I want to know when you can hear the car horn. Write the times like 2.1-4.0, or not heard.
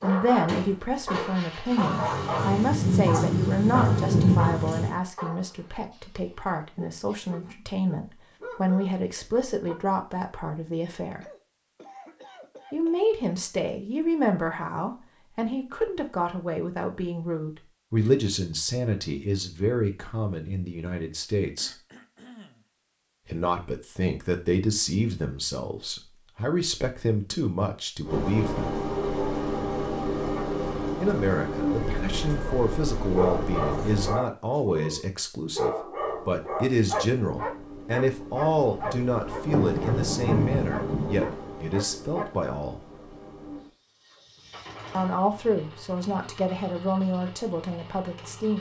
not heard.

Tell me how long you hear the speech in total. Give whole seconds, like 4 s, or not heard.
41 s.